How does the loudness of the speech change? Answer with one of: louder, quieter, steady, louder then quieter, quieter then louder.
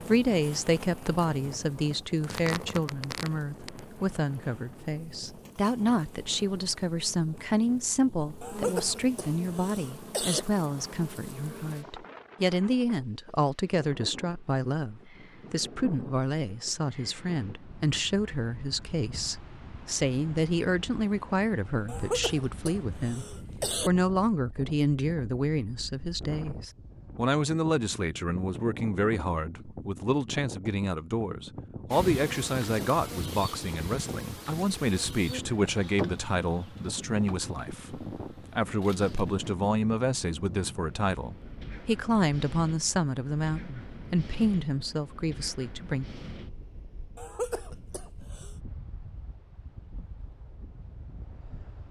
steady.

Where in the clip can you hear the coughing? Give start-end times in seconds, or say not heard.
8.4-10.4, 21.9-23.9, 47.1-48.5.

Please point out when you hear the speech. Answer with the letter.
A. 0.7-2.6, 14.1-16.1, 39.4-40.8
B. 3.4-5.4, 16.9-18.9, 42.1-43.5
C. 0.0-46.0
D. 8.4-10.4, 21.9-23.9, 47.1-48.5
C.